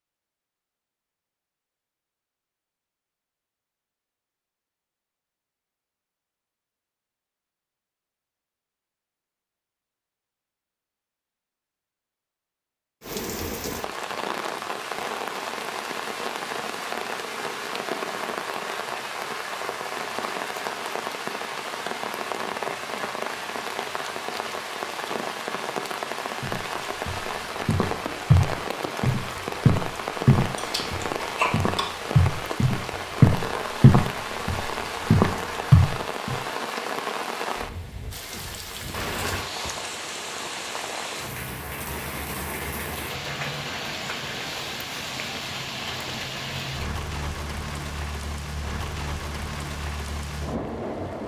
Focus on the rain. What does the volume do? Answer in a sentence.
The volume of the rain stays about the same.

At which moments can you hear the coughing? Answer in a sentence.
You can hear the coughing from 30.6 to 31.9 s.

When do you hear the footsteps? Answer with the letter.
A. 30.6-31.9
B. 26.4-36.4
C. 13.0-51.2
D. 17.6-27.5
B.